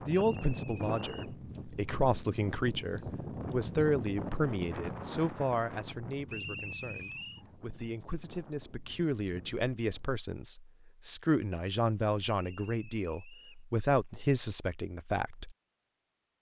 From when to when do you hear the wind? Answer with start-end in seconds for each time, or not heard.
0.0-10.2.